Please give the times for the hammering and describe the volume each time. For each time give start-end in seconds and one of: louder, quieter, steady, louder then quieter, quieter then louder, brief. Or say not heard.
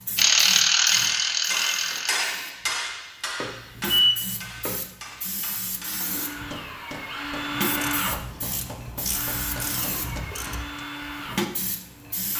0.8-10.8 quieter.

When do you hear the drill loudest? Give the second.
8 s.